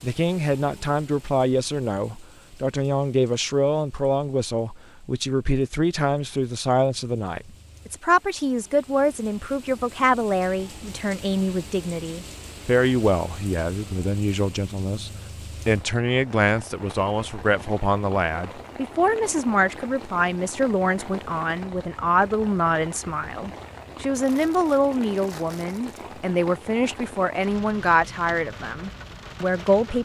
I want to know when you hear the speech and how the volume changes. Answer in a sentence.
The speech can be heard from 0.0 to 30.0 s, at a steady volume.